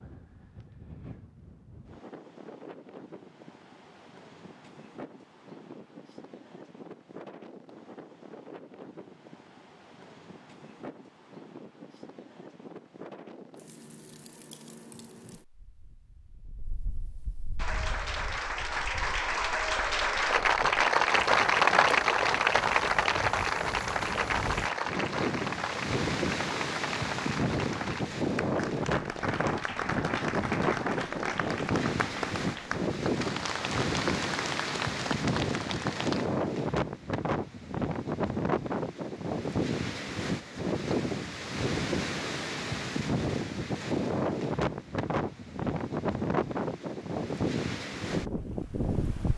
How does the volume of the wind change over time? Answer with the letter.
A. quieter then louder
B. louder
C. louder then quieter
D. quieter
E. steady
B.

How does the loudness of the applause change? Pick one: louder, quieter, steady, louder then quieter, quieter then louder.
quieter.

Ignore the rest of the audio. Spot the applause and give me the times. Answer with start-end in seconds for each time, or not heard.
17.6-36.2.